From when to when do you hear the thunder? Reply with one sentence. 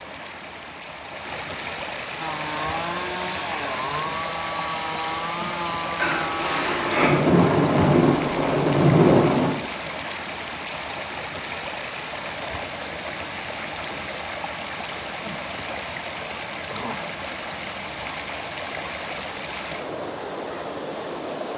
The thunder can be heard from 6.0 to 9.5 s.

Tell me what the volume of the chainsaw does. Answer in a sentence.
The volume of the chainsaw stays about the same.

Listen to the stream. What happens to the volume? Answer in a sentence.
The volume of the stream stays about the same.